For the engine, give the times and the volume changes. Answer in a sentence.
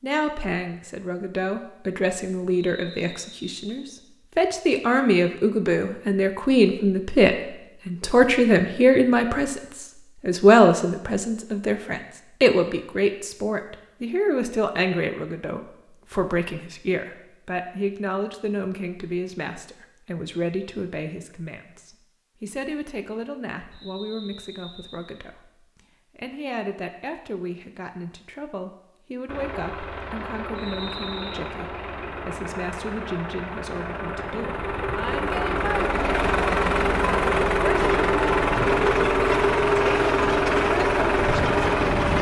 You can hear the engine from 29.2 to 42.1 s, getting louder.